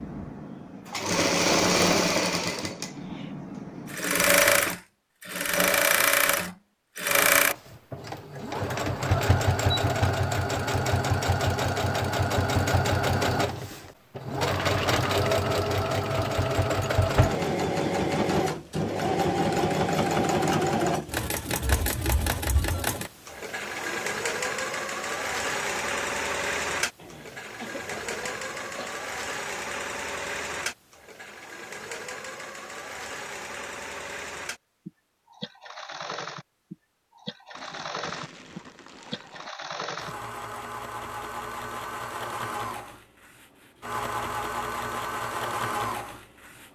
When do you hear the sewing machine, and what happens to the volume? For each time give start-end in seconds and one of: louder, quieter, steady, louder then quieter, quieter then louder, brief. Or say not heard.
0.0-46.6 quieter.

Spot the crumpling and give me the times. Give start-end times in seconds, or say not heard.
14.4-15.2, 37.5-39.5.